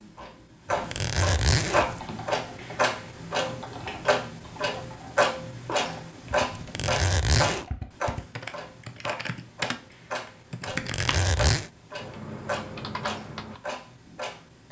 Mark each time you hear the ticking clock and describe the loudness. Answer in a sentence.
The ticking clock can be heard from 0.0 to 14.6 s, getting quieter.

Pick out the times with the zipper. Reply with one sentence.
You can hear the zipper from 0.7 to 2.0 s, from 6.5 to 7.7 s and from 10.7 to 11.7 s.